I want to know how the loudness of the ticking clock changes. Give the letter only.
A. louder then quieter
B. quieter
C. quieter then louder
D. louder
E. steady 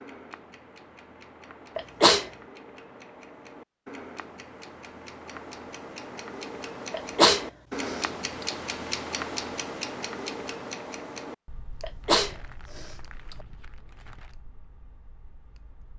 A.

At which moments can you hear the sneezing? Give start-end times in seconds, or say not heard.
1.8-2.2, 6.9-8.4, 11.8-13.3.